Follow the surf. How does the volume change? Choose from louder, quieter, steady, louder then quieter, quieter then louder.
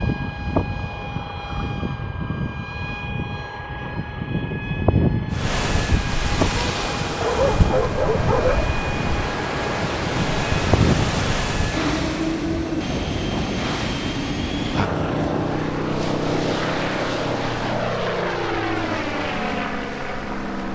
quieter.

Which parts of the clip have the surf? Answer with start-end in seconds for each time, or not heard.
5.3-20.7.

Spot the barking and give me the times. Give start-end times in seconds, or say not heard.
7.2-8.7.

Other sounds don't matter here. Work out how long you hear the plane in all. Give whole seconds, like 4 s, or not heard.
21 s.